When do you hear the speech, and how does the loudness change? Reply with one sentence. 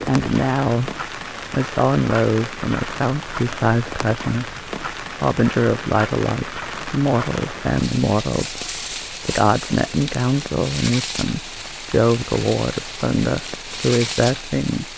The speech can be heard from 0.1 to 14.9 s, at a steady volume.